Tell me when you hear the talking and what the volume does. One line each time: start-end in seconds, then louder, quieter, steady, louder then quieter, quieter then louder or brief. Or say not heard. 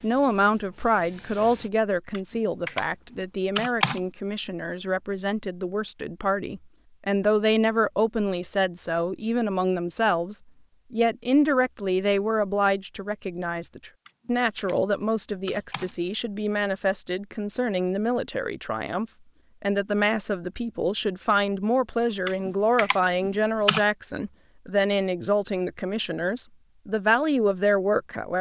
0.0-28.3 steady.